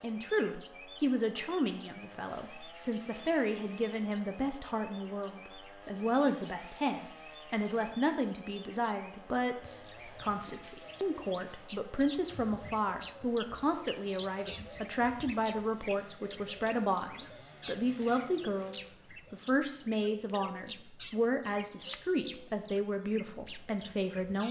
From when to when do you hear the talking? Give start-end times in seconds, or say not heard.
0.0-24.4.